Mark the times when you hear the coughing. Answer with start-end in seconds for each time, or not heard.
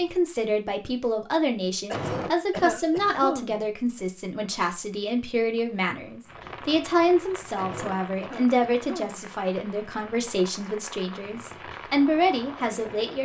1.9-3.7, 7.5-9.2.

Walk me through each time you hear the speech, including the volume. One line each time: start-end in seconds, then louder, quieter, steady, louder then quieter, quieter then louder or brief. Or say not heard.
0.0-13.1 steady.